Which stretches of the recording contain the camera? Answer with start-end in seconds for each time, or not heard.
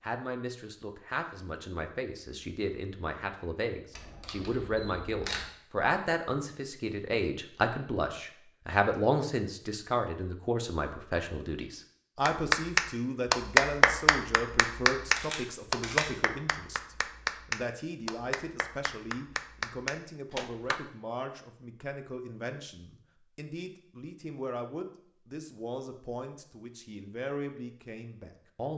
3.9-5.5, 15.2-16.1.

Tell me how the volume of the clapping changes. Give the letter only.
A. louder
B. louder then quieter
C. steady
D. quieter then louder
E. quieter
E.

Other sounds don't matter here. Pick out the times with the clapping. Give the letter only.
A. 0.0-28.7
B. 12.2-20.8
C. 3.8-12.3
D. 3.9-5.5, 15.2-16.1
B.